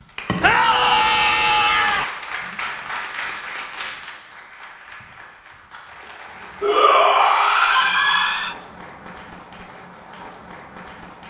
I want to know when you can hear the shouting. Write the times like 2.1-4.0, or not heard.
0.4-2.0, 6.6-8.6.